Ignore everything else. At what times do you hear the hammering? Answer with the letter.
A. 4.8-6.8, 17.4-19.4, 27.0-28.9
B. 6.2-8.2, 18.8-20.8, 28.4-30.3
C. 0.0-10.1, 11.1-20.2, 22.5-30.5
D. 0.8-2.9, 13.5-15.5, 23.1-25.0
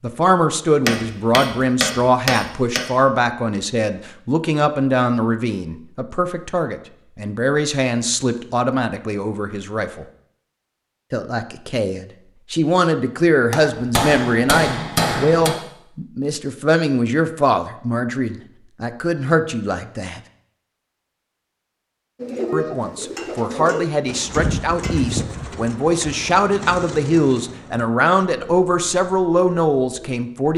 D.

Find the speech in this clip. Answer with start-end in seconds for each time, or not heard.
0.0-10.1, 11.1-20.2, 22.5-30.5.